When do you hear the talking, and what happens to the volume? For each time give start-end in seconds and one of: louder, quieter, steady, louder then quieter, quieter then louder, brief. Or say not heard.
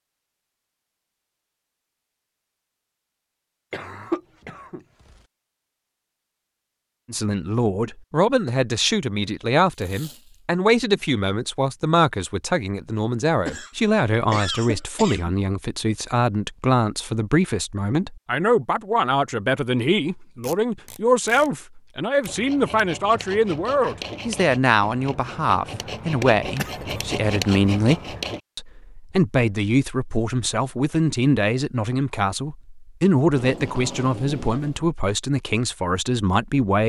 7.1-36.8 steady.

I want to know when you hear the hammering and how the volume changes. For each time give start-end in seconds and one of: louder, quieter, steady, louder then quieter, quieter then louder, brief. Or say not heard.
not heard.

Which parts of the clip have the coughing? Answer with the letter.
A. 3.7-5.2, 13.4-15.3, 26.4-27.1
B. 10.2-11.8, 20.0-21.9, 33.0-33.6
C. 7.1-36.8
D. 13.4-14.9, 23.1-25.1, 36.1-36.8
A.